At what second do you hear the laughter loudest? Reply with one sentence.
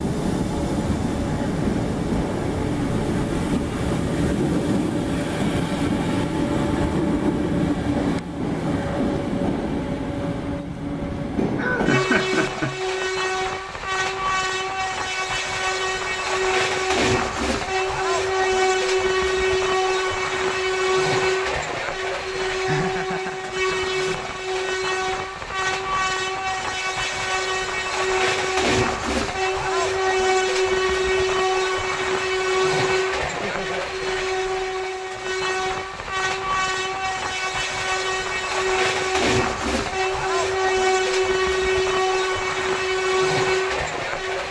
The volume of the laughter peaks at 12 seconds.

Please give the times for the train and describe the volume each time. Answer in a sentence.
The train can be heard from 0.0 to 44.4 s, at a steady volume.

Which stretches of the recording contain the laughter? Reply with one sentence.
The laughter can be heard from 11.6 to 12.8 s, from 22.6 to 24.1 s and from 33.3 to 33.9 s.